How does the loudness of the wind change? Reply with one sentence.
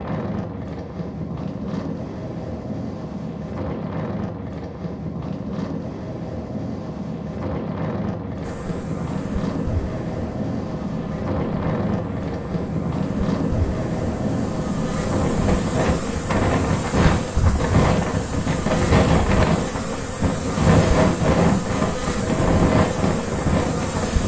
The loudness of the wind goes up.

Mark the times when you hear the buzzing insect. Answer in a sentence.
The buzzing insect can be heard from 8.4 to 24.2 s.